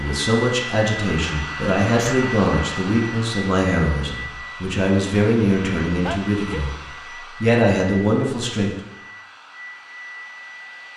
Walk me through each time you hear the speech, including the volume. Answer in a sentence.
You can hear the speech from 0.0 to 6.8 s, at a steady volume; and briefly from 7.4 to 8.7 s.